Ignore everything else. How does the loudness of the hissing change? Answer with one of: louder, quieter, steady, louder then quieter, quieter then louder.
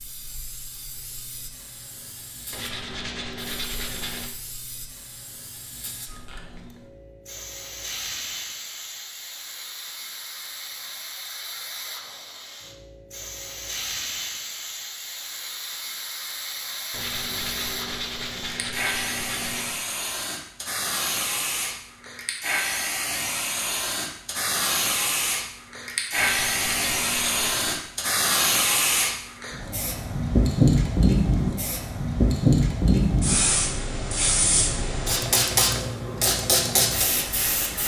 louder.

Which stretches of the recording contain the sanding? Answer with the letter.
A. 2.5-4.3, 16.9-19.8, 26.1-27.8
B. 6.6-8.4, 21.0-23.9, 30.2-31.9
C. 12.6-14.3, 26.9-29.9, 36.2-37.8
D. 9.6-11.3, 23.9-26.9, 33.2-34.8
A.